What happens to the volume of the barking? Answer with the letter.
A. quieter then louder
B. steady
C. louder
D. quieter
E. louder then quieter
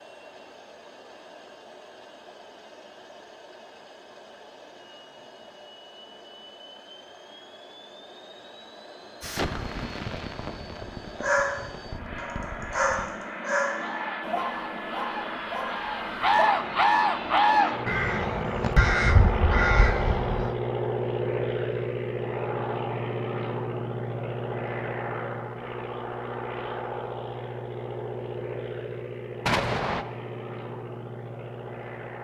E.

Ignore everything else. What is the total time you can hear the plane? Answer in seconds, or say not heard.
32 s.